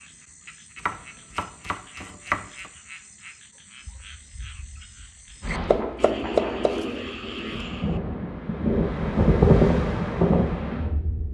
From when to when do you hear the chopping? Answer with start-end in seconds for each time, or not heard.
0.8-2.7, 5.7-6.8.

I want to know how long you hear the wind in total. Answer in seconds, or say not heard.
6 s.